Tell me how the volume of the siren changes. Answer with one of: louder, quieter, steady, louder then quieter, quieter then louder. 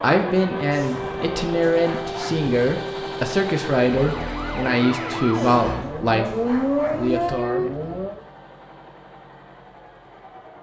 louder.